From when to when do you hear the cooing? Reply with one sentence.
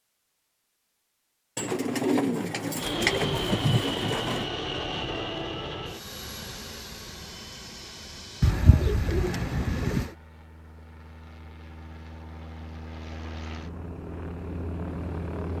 The cooing can be heard from 1.6 to 4.5 s and from 8.4 to 10.1 s.